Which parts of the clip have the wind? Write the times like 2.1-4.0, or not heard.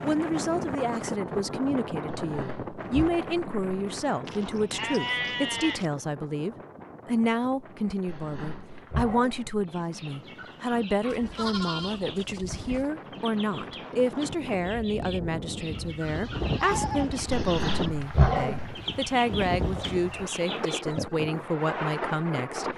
0.0-22.7.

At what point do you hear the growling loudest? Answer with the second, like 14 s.
18 s.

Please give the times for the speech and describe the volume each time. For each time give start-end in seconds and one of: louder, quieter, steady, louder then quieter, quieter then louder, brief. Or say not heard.
0.0-22.7 steady.